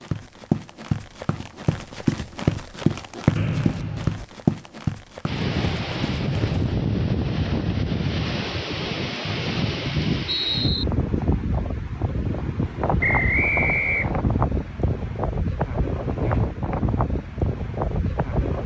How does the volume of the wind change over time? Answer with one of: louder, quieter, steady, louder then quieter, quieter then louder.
steady.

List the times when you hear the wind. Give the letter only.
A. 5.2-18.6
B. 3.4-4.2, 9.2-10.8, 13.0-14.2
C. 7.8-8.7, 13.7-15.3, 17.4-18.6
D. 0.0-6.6
A.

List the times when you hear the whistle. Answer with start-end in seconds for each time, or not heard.
3.4-4.2, 9.2-10.8, 13.0-14.2.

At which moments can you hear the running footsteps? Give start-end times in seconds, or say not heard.
0.0-6.6.